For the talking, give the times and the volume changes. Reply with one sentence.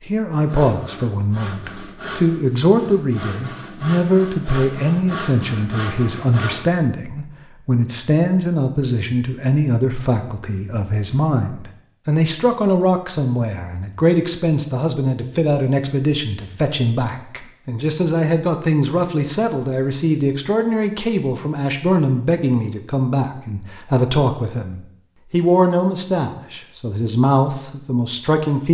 You can hear the talking from 0.0 to 28.6 s, at a steady volume.